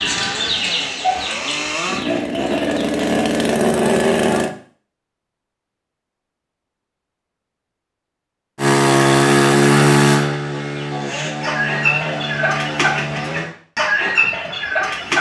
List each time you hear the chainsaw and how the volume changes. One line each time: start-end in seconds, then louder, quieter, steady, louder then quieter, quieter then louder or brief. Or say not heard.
0.0-4.5 louder
8.6-13.5 quieter.